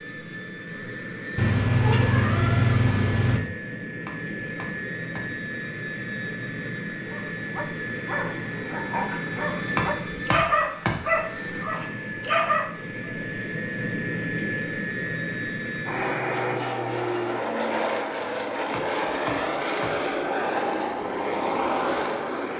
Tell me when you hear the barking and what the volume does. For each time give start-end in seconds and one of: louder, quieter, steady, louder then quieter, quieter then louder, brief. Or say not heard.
7.0-13.1 louder.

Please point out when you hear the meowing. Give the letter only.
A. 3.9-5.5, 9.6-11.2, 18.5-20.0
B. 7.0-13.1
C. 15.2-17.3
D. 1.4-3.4
D.